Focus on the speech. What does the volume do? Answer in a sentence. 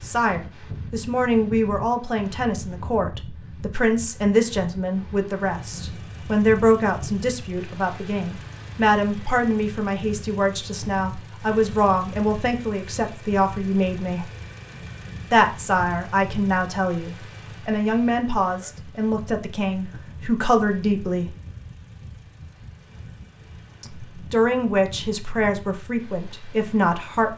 The loudness of the speech stays about the same.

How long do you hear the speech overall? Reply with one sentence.
The speech can be heard for 24 seconds in total.